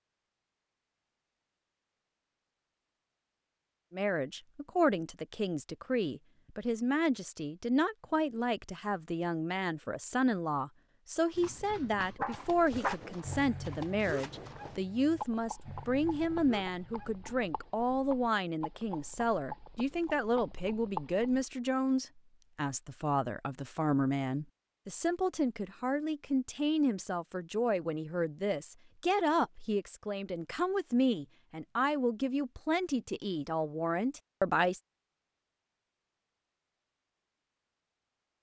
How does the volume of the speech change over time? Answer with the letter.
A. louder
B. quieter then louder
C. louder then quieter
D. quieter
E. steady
E.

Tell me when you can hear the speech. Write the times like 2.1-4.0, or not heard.
3.9-34.8.